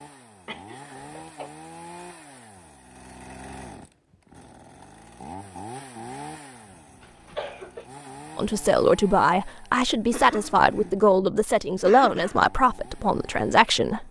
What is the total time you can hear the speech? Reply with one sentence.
The speech can be heard for 6 seconds in total.